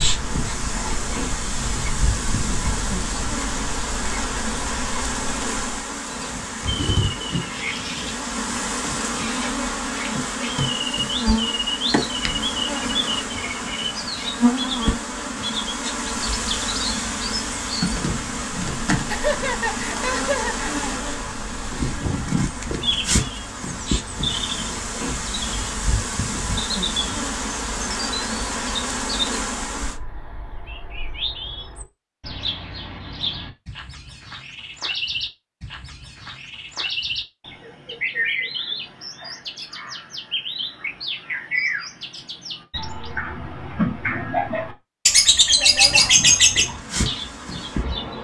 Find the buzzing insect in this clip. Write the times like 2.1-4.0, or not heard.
0.0-30.0, 45.8-48.1.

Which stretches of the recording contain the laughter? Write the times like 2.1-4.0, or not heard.
19.1-20.9.